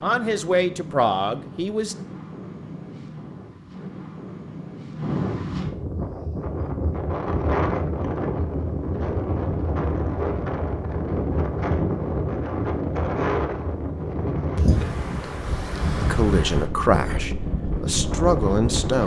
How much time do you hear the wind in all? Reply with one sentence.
You can hear the wind for 19 seconds altogether.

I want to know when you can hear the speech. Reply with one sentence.
The speech can be heard from 0.0 to 1.9 s and from 15.9 to 19.0 s.